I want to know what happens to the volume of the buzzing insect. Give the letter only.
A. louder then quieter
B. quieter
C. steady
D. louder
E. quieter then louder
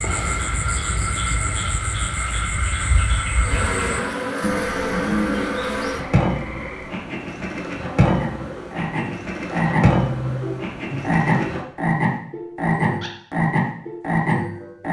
D.